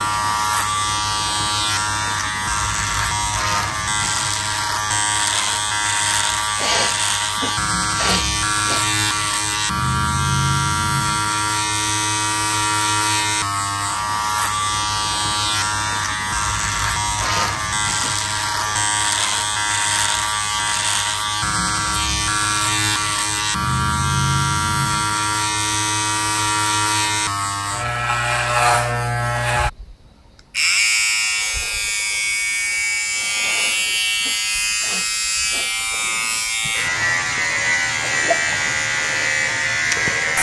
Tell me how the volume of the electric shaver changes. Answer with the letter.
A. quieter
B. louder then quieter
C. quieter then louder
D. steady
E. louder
D.